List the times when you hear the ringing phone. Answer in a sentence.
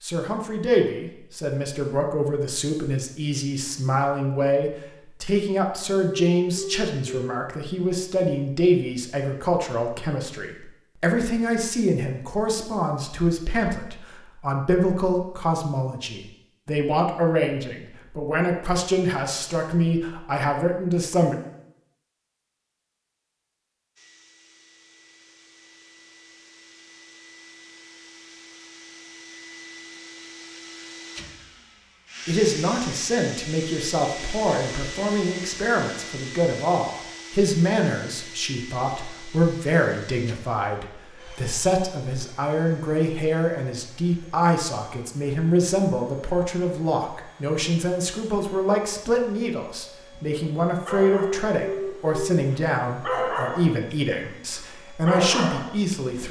You can hear the ringing phone from 6.0 to 7.3 s and from 51.1 to 52.4 s.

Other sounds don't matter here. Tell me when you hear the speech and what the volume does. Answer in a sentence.
The speech can be heard from 0.0 to 21.4 s, at a steady volume; and from 32.2 to 56.2 s, at a steady volume.